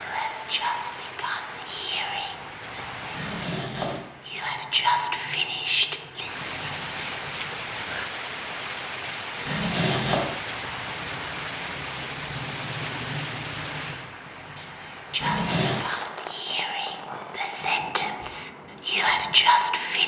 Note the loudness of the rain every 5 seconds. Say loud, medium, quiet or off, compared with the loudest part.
medium, loud, loud, medium.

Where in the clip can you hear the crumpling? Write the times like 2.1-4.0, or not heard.
3.1-4.0, 9.4-10.3, 15.2-15.8.